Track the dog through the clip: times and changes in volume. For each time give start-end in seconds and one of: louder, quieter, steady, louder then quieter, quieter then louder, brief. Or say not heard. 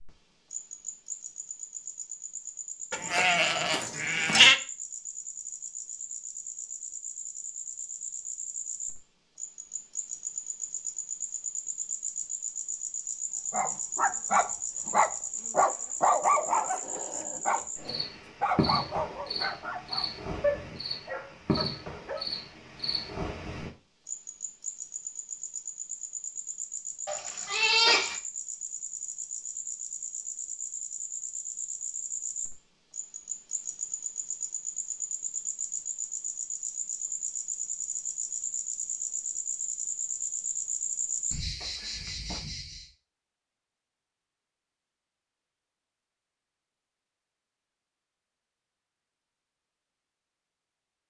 13.5-22.2 quieter.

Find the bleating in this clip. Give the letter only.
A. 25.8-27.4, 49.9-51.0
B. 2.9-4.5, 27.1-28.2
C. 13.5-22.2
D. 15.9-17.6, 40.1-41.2
B.